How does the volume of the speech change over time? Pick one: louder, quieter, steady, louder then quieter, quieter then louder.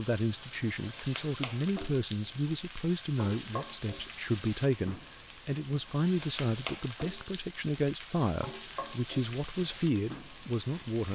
steady.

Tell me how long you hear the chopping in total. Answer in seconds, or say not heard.
not heard.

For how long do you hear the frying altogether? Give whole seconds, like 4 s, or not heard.
11 s.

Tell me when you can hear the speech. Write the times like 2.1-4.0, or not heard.
0.0-11.0.